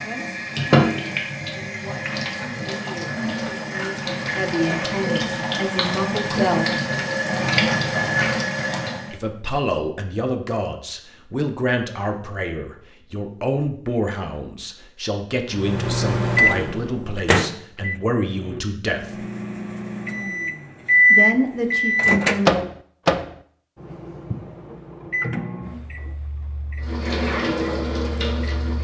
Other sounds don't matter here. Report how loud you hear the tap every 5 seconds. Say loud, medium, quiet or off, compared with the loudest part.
loud, loud, off, off, off, loud.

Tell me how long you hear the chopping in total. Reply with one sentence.
You can't hear the chopping here.